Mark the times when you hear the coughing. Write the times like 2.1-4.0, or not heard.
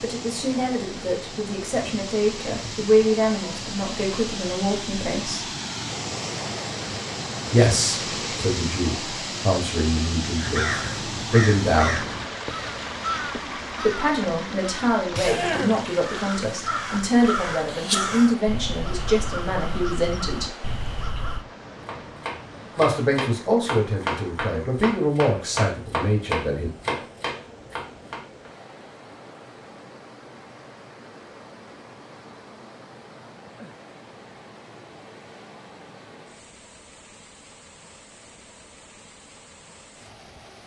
15.2-15.8.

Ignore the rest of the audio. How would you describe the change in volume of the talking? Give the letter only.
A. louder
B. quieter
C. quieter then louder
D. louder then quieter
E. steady
E.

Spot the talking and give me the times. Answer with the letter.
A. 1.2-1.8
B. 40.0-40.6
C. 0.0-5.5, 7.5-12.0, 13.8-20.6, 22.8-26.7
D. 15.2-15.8
C.